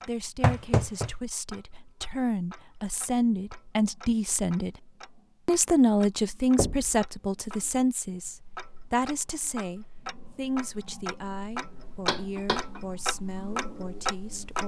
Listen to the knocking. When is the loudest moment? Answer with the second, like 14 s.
1 s.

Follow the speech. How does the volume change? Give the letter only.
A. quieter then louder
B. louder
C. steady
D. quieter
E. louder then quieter
E.